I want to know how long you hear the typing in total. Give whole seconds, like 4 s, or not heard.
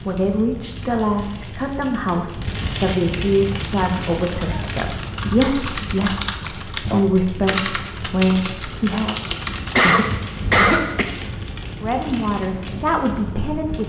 6 s.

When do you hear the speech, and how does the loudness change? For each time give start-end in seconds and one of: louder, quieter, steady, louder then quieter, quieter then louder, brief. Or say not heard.
0.1-9.2 steady
11.8-13.8 brief.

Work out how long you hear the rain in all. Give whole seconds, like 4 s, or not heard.
14 s.